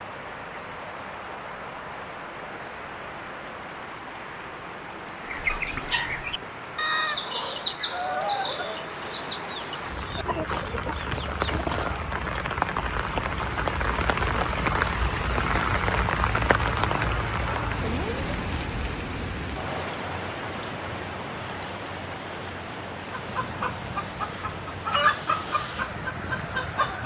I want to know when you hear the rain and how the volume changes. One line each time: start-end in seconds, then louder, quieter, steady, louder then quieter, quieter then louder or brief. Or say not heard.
0.0-27.0 louder then quieter.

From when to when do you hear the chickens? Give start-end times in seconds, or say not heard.
5.2-12.3, 23.1-27.0.